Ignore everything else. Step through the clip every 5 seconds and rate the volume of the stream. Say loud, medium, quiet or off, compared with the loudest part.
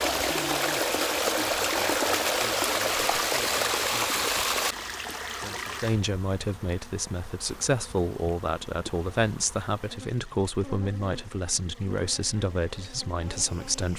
loud, quiet, quiet.